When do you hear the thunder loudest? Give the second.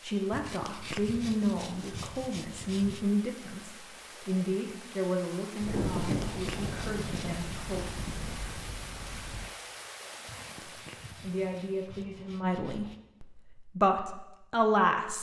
6 s.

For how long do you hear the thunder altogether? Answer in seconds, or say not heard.
4 s.